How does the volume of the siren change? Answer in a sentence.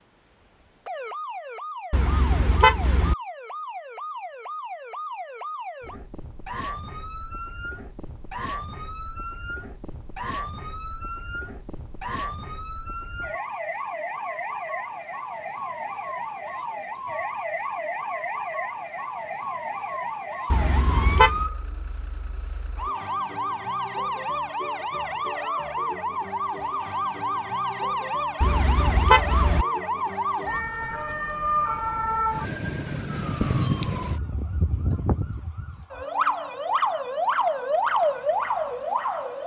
The volume of the siren goes up.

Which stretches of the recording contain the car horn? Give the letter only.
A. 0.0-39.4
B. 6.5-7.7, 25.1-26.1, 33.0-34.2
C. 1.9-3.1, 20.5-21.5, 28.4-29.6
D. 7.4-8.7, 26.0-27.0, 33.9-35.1
C.